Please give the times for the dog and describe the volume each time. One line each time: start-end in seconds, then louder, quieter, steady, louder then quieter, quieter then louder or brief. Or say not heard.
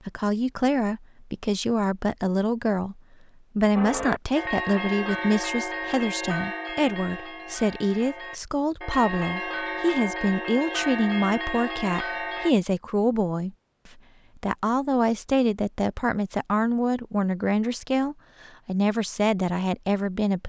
not heard.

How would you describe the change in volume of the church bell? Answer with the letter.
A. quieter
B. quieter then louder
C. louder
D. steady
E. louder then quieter
B.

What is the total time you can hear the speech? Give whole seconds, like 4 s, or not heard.
20 s.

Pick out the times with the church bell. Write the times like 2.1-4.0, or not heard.
3.8-12.6.